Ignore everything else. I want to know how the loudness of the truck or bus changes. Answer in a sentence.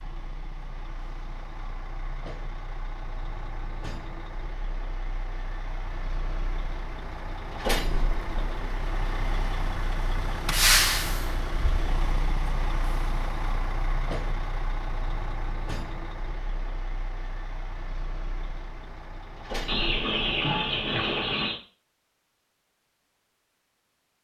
The loudness of the truck or bus goes up, then down.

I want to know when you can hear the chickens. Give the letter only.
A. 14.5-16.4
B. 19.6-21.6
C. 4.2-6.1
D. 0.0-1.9
B.